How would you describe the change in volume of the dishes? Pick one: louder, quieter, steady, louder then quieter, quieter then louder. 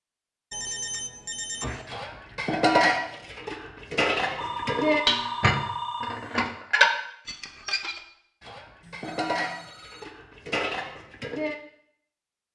quieter.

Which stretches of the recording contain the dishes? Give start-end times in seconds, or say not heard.
1.6-11.6.